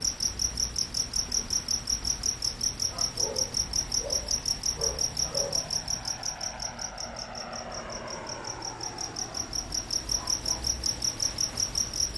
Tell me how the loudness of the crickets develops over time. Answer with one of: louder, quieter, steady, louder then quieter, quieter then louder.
quieter then louder.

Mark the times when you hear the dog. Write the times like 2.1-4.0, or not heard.
3.1-5.8.